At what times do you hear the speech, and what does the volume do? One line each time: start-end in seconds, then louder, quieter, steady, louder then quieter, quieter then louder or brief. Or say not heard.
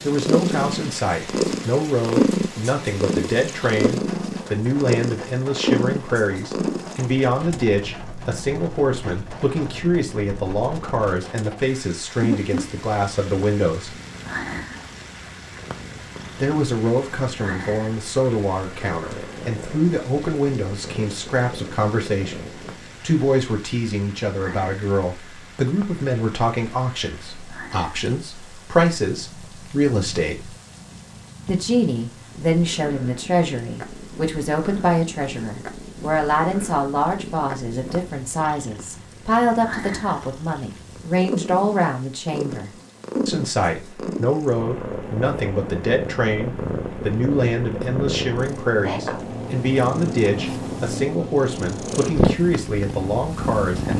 0.0-13.9 steady
16.4-30.6 steady
31.4-53.9 steady.